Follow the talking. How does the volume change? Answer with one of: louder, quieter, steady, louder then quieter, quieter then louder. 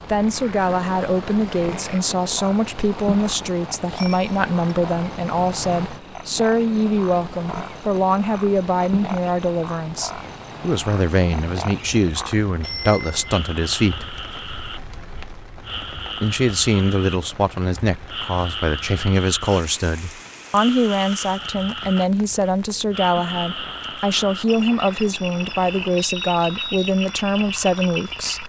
steady.